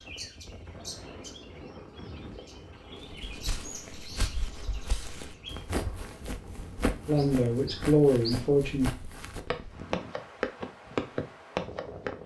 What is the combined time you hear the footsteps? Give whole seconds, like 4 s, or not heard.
9 s.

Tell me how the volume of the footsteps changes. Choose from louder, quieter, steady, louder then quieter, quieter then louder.
louder.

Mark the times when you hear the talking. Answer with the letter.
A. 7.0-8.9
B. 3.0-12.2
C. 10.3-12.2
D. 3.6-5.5
A.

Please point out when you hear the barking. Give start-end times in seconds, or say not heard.
not heard.